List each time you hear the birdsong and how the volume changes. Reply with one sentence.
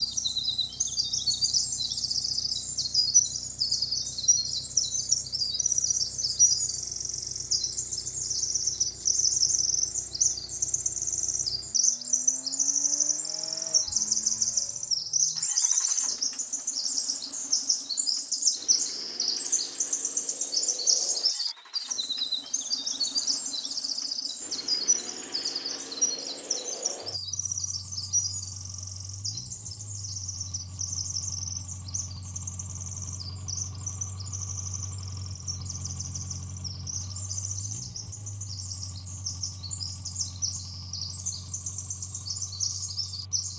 You can hear the birdsong from 0.0 to 43.5 s, getting quieter.